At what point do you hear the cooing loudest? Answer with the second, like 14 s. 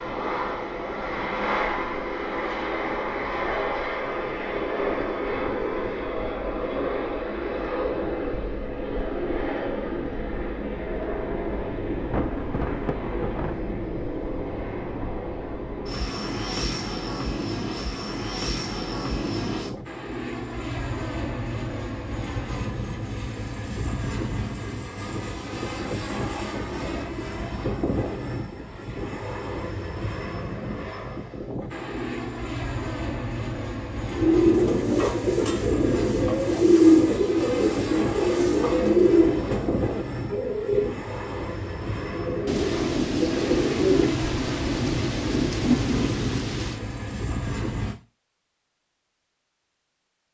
37 s.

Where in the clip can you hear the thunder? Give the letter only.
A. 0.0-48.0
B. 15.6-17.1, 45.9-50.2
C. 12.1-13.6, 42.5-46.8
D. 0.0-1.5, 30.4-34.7
C.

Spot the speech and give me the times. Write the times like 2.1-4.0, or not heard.
not heard.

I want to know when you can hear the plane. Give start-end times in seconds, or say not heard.
0.0-48.0.